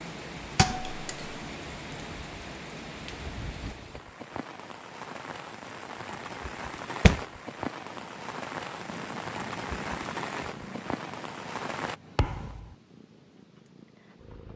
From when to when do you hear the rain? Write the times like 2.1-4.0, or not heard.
0.0-11.9.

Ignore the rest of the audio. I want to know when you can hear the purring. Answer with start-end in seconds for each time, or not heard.
7.9-14.5.